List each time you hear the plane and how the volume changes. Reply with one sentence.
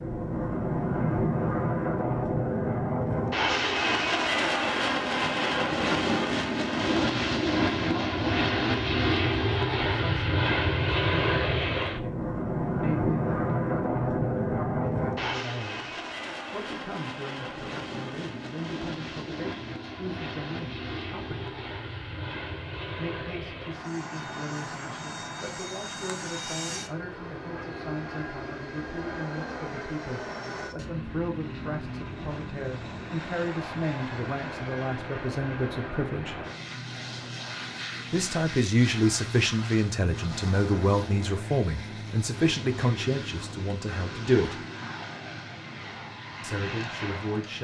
The plane can be heard from 0.0 to 47.5 s, getting quieter.